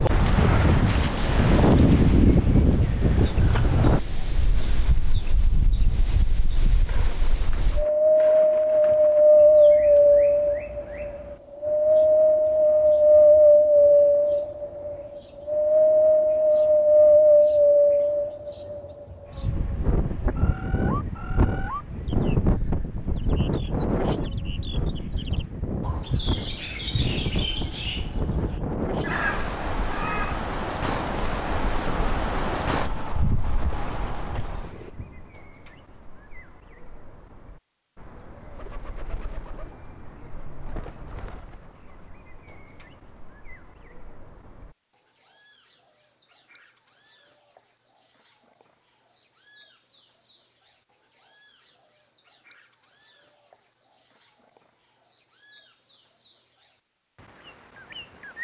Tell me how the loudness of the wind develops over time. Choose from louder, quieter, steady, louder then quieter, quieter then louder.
louder then quieter.